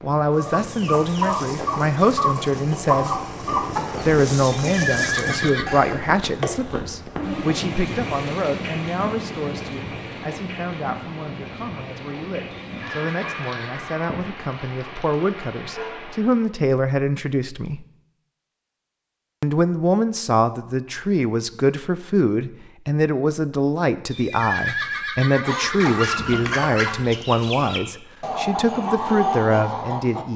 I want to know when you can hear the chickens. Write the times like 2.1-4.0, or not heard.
0.3-7.7, 25.4-30.2.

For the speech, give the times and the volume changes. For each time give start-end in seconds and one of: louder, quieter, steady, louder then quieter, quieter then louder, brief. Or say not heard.
0.0-17.9 quieter then louder
19.4-30.3 steady.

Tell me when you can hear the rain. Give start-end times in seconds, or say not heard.
0.0-16.5.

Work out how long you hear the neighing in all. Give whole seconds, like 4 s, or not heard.
5 s.